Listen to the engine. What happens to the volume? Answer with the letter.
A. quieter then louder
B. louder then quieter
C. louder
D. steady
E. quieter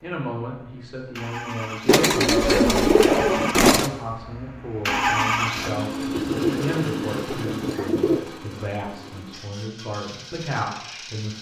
B.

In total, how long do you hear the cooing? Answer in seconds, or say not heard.
4 s.